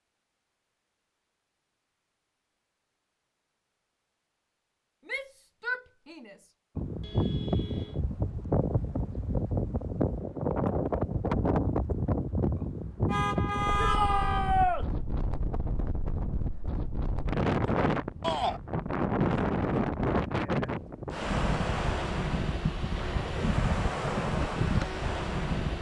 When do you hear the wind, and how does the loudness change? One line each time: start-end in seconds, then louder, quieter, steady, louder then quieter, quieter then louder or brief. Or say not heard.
6.8-25.7 steady.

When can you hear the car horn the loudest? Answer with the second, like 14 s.
14 s.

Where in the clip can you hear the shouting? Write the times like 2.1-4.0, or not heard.
5.0-6.5, 13.8-14.8, 18.2-18.6.